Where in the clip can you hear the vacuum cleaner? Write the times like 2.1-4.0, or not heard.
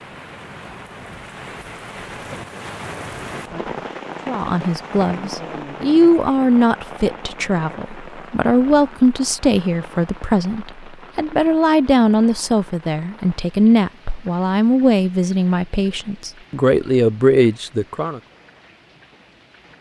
not heard.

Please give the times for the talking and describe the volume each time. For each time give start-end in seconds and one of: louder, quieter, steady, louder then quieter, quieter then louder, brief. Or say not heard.
4.2-18.2 steady.